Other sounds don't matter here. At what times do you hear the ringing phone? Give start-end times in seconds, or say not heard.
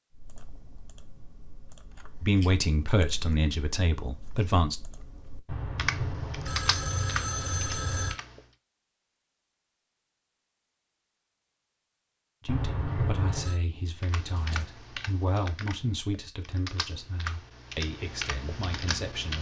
5.5-8.2, 12.4-13.6.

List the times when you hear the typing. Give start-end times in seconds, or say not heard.
0.1-8.6, 14.0-19.3.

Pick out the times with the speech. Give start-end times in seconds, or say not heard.
2.2-4.8, 12.4-19.3.